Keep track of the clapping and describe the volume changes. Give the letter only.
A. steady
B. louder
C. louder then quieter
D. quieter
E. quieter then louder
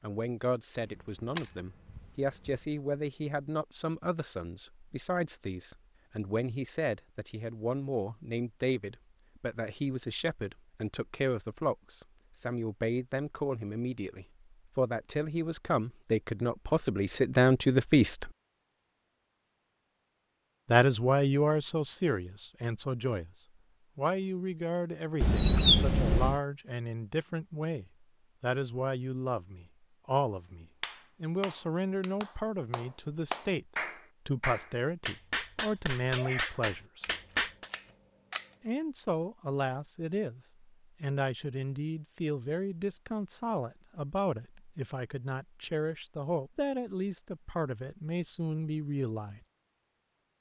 B.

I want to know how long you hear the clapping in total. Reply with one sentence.
You can hear the clapping for 7 seconds altogether.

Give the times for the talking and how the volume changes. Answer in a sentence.
You can hear the talking from 0.0 to 18.3 s, getting louder; briefly from 20.7 to 23.3 s; from 23.9 to 37.0 s, at a steady volume; and from 38.6 to 49.4 s, at a steady volume.